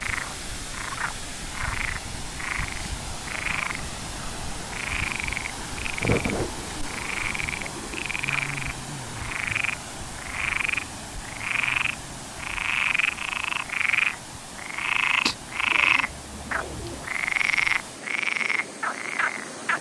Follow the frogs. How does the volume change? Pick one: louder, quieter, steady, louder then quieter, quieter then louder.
louder.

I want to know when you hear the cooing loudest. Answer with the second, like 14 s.
6 s.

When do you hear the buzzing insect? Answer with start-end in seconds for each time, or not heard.
not heard.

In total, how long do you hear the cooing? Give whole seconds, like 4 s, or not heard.
4 s.